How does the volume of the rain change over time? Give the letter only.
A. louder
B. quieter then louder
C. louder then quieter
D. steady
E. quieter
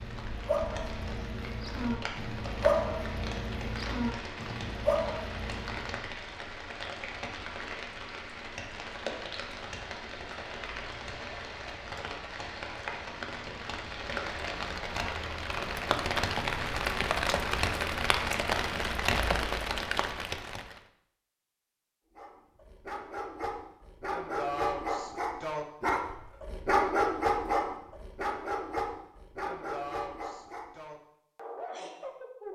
A.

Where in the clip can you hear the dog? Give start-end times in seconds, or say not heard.
0.0-6.2, 22.1-32.5.